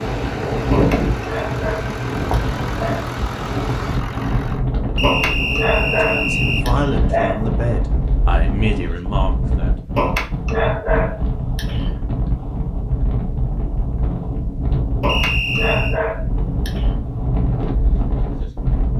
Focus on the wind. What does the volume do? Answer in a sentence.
The loudness of the wind stays about the same.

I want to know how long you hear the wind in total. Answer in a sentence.
You can hear the wind for 19 seconds altogether.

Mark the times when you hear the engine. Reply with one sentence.
You can hear the engine from 0.0 to 4.7 s.